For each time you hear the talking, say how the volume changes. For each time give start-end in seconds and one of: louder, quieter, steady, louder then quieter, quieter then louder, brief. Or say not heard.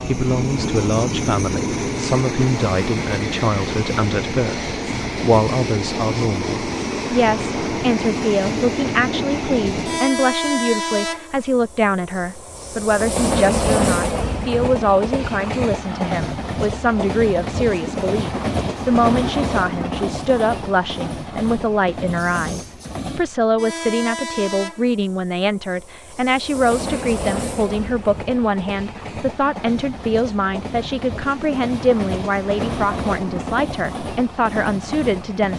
0.0-35.5 steady.